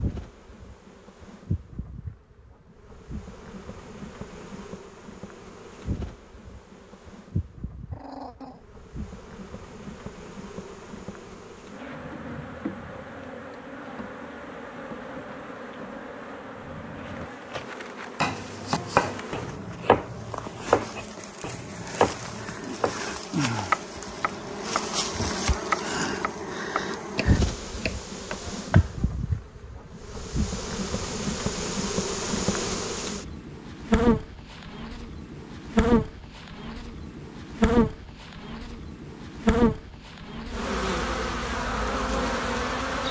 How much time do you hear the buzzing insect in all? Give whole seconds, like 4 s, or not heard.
43 s.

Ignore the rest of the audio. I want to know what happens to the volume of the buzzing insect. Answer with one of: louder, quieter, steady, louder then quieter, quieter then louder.
louder.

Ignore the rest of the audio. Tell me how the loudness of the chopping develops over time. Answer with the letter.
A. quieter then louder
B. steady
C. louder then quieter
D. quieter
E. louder
D.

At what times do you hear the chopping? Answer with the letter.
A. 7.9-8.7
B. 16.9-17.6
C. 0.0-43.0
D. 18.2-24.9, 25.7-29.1
D.